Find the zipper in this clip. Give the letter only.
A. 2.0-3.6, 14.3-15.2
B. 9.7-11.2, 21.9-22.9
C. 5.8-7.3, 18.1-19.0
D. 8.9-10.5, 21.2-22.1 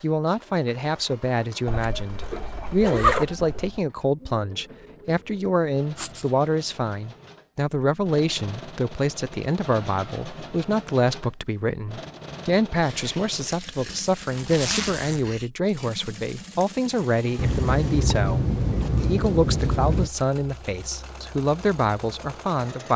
A.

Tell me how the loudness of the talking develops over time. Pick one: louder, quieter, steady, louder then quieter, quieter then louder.
steady.